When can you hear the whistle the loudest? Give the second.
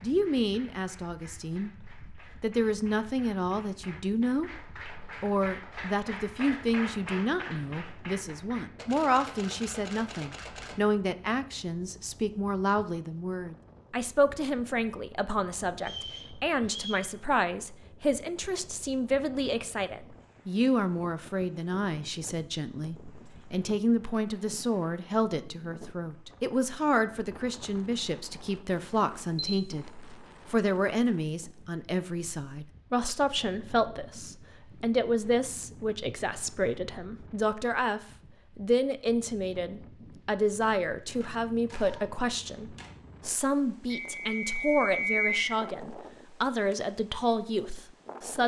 45 s.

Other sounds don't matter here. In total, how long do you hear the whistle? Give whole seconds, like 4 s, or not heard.
3 s.